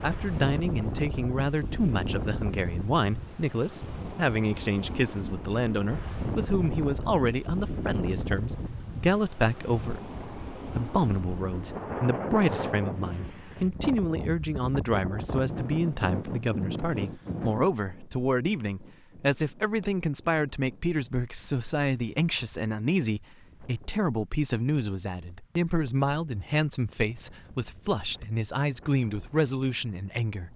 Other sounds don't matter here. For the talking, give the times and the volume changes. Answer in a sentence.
You can hear the talking from 0.0 to 30.5 s, at a steady volume.